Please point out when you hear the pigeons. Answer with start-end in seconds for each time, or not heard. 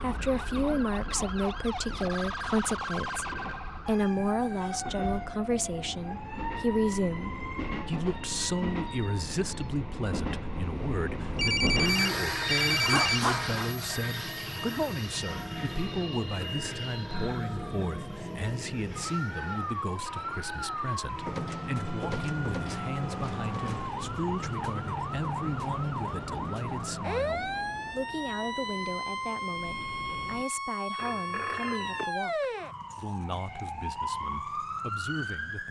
not heard.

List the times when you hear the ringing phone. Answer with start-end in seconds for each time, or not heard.
11.3-13.6, 30.9-32.1.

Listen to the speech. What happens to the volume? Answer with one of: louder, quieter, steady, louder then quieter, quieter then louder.
quieter.